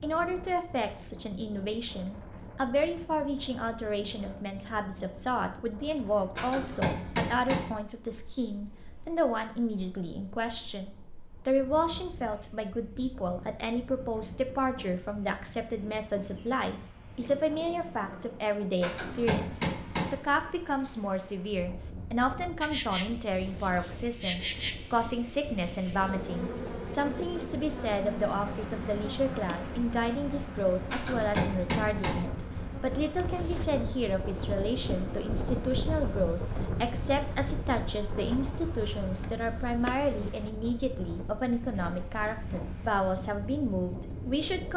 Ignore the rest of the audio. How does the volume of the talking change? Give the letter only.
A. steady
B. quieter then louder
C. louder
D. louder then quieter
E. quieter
A.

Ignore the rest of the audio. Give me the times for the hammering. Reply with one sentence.
The hammering can be heard from 6.3 to 7.8 s, from 18.8 to 20.2 s and from 30.9 to 32.3 s.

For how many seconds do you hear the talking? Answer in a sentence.
The talking can be heard for 45 seconds in total.